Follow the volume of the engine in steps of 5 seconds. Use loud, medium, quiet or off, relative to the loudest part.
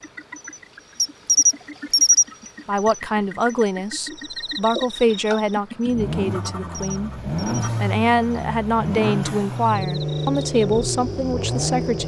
quiet, loud, loud.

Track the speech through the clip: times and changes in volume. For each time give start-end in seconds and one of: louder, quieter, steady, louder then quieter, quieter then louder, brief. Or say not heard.
2.6-12.0 steady.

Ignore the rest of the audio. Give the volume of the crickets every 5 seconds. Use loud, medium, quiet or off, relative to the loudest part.
loud, quiet, quiet.